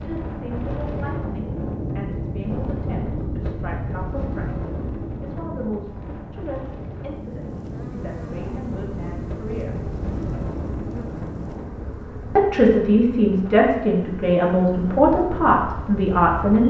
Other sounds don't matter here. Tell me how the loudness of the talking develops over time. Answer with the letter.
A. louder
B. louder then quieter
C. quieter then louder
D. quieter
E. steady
A.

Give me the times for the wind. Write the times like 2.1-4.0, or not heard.
0.0-16.6.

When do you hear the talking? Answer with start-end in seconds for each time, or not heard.
0.0-9.8, 12.3-16.6.